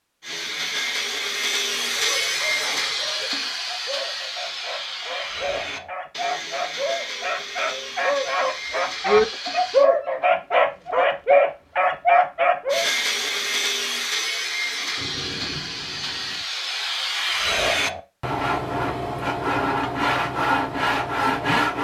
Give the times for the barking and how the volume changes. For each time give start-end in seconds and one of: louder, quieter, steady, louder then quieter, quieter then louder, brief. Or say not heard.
1.6-12.9 louder.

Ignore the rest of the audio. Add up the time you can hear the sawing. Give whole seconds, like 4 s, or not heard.
19 s.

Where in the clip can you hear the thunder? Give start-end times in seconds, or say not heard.
14.9-16.4.